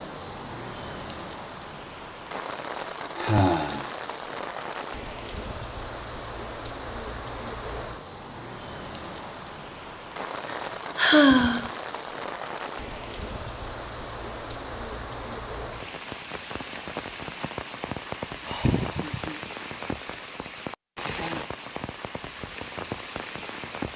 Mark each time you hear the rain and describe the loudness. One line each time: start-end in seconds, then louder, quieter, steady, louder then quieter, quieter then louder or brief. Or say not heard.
0.0-23.9 steady.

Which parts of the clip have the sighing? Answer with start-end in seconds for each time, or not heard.
3.1-3.9, 10.5-11.7, 18.4-19.4.